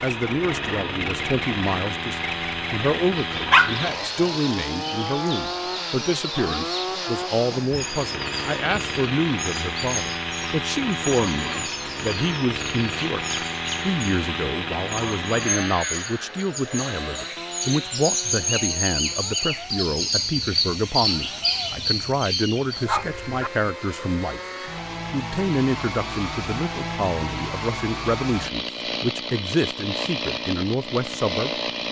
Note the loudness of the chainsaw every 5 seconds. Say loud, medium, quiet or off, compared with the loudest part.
loud, loud, loud, medium, medium, loud, loud.